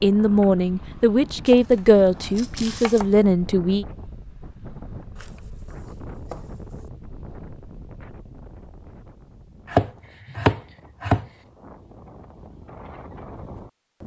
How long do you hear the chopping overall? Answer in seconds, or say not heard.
5 s.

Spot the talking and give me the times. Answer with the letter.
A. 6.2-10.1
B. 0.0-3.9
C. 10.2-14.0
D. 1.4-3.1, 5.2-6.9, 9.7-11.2
B.